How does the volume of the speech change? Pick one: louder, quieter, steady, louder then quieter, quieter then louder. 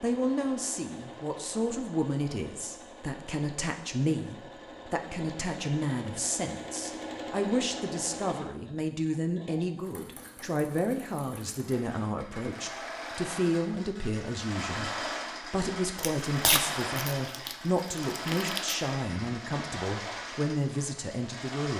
steady.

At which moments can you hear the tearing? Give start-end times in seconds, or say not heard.
15.9-18.8.